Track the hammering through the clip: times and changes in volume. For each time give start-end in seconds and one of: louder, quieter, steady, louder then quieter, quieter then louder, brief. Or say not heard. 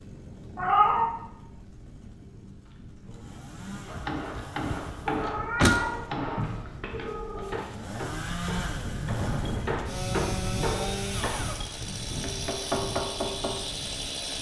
3.9-13.6 quieter then louder.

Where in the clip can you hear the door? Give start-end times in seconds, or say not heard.
4.0-5.8.